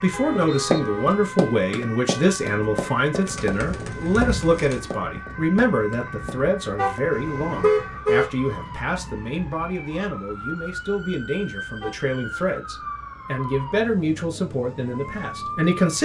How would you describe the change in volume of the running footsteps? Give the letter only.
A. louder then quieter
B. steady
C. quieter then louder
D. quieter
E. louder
D.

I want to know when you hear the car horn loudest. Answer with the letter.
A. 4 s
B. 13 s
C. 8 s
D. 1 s
C.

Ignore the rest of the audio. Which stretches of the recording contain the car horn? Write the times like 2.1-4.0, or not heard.
0.1-1.2, 6.8-8.3, 11.8-12.6.